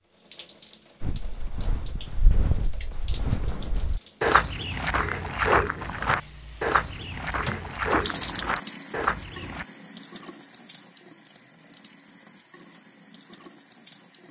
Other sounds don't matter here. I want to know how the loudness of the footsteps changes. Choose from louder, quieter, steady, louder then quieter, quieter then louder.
louder.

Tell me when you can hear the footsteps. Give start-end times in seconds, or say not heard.
1.0-9.7.